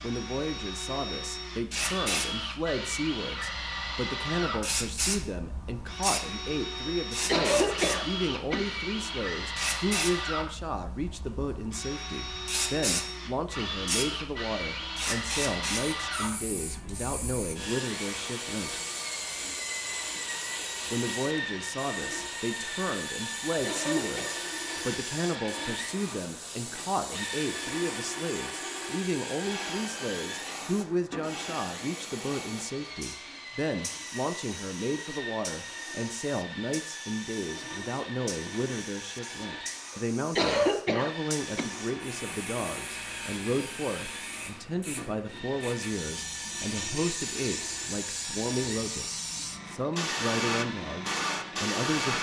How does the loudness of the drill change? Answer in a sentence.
The loudness of the drill goes down.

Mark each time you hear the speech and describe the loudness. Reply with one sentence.
You can hear the speech from 0.0 to 18.8 s, at a steady volume; and from 20.9 to 52.1 s, at a steady volume.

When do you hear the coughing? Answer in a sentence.
You can hear the coughing from 6.8 to 8.8 s, from 23.6 to 24.4 s and from 40.4 to 41.7 s.